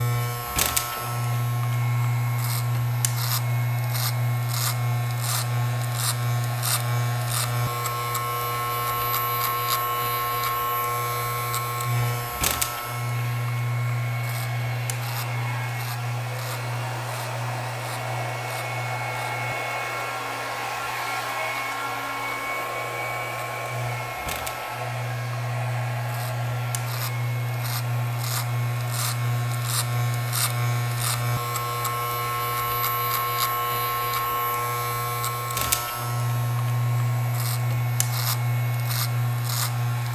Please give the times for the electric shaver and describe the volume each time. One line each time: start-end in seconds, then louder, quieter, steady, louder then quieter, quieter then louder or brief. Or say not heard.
0.0-40.0 quieter then louder.